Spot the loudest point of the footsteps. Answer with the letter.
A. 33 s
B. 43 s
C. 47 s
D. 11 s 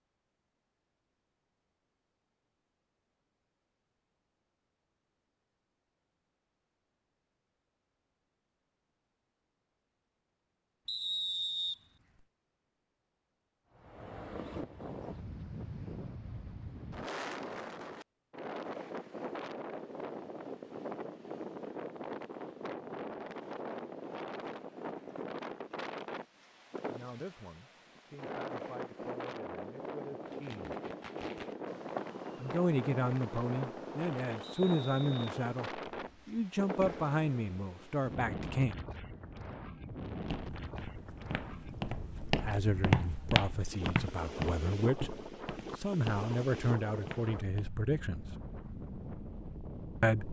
B.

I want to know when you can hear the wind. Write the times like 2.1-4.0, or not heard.
13.8-50.2.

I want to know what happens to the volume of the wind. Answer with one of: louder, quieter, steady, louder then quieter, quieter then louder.
steady.